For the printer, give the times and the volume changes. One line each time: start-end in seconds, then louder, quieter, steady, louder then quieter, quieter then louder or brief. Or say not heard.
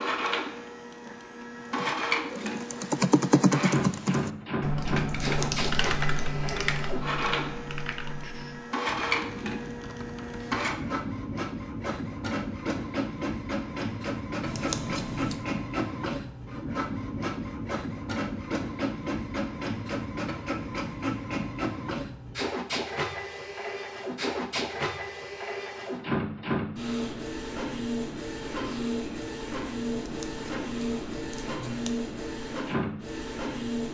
0.0-33.8 steady.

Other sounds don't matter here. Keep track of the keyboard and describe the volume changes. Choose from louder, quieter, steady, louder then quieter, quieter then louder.
quieter.